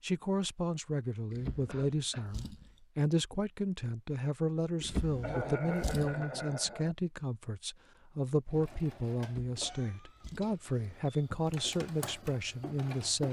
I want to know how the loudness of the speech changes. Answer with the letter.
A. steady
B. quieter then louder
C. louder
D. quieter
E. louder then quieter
A.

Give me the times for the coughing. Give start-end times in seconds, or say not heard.
1.6-2.3, 5.2-7.0, 9.6-11.2.